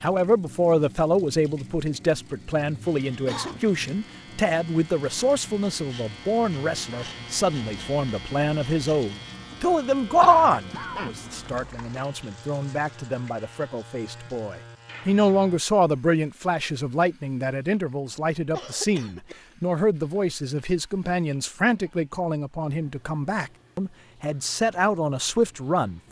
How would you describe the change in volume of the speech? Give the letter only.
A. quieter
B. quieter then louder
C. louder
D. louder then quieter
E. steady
E.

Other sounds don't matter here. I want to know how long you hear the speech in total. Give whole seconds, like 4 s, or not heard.
26 s.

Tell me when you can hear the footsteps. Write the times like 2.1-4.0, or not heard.
not heard.